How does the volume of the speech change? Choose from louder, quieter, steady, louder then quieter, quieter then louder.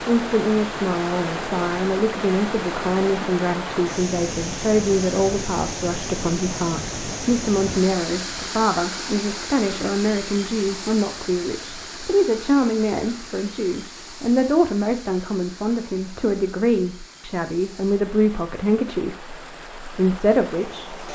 steady.